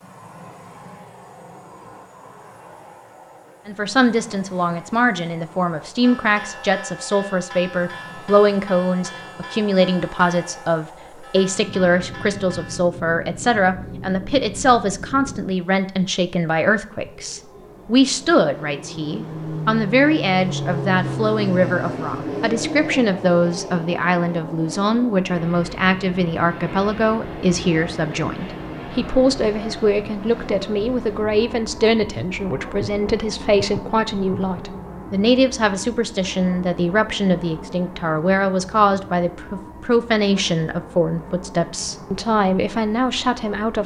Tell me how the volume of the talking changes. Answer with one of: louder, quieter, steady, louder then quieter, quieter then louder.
steady.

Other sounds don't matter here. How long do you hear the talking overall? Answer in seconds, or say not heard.
40 s.